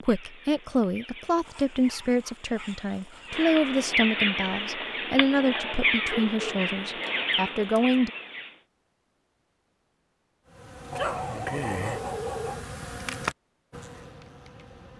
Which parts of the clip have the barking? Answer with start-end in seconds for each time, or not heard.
1.4-3.5, 6.0-8.0, 10.9-12.7.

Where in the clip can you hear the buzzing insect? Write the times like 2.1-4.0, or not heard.
10.4-14.9.